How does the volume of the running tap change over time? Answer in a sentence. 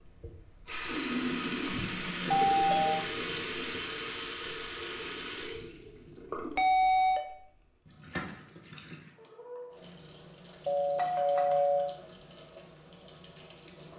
The volume of the running tap goes down.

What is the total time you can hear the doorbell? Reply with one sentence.
The doorbell can be heard for 3 seconds in total.